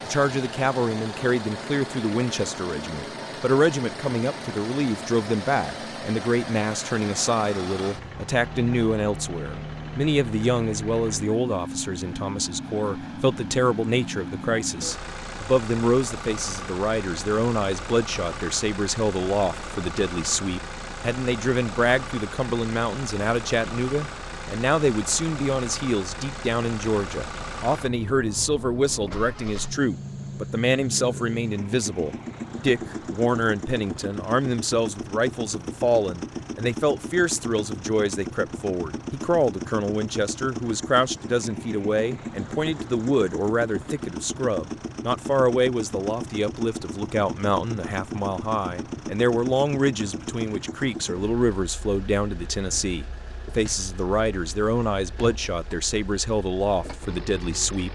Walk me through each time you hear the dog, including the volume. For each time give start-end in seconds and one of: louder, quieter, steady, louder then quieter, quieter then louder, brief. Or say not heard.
not heard.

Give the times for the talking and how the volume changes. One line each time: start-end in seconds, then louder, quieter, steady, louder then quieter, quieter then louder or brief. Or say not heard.
0.1-57.8 steady.